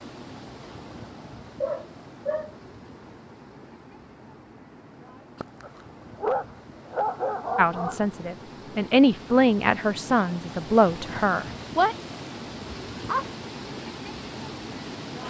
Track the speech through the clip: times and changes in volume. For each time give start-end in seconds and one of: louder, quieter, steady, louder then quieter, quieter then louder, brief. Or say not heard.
7.5-11.9 louder then quieter.